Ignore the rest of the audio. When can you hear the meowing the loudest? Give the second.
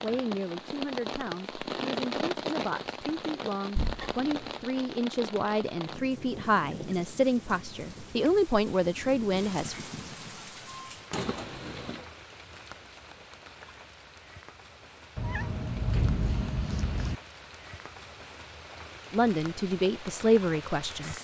16 s.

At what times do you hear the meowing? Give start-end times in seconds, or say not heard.
3.8-4.5, 11.1-12.1, 15.2-17.1.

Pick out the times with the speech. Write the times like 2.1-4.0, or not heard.
0.0-9.8, 19.1-21.1.